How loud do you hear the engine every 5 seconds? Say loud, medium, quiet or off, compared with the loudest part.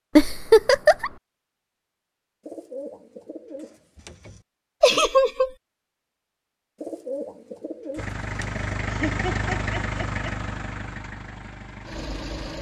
off, loud, medium.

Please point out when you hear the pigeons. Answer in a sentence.
You can hear the pigeons from 2.5 to 4.5 s and from 6.8 to 8.8 s.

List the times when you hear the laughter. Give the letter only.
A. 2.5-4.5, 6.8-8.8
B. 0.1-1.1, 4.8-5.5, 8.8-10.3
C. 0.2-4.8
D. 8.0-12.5
B.